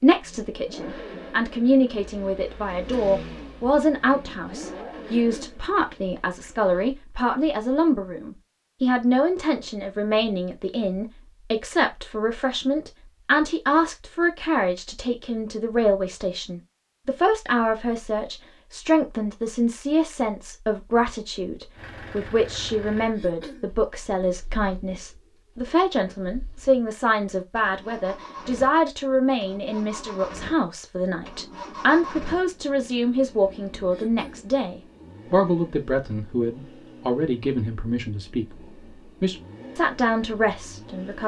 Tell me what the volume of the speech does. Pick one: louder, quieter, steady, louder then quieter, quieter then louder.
steady.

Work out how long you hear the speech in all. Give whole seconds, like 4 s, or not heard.
41 s.